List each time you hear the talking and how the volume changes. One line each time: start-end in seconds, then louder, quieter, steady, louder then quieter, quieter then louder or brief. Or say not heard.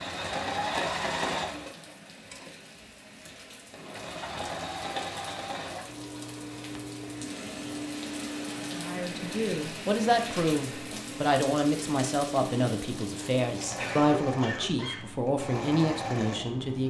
8.7-16.8 steady.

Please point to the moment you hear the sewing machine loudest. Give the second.
1 s.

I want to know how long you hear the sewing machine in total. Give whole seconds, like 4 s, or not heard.
17 s.